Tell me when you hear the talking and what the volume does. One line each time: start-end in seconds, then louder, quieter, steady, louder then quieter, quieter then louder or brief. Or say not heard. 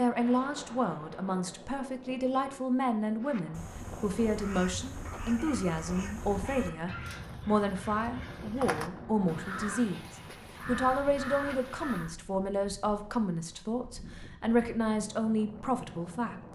0.0-16.5 steady.